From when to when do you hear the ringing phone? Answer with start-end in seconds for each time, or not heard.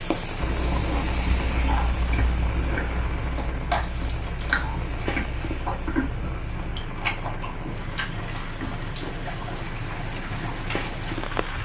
not heard.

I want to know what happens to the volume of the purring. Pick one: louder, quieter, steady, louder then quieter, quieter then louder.
steady.